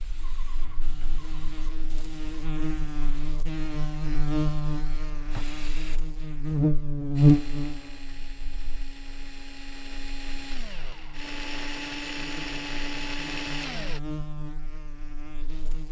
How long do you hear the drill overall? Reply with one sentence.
You can hear the drill for 7 seconds altogether.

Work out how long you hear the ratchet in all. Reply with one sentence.
You can't hear the ratchet here.